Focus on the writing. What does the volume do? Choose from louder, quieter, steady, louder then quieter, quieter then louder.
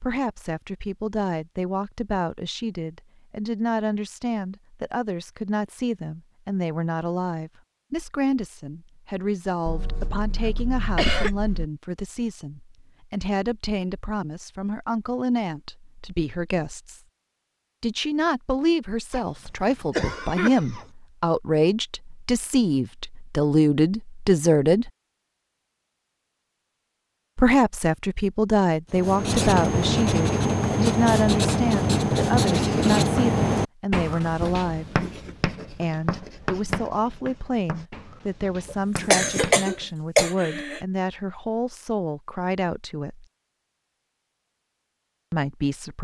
quieter.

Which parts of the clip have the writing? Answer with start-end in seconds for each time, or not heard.
28.9-39.9.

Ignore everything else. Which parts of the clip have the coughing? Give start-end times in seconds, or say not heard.
9.7-11.7, 19.1-20.9, 38.7-40.8.